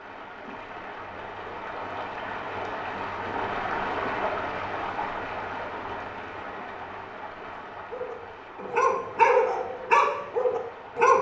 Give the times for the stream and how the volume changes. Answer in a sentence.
You can hear the stream from 0.0 to 11.1 s, getting louder then quieter.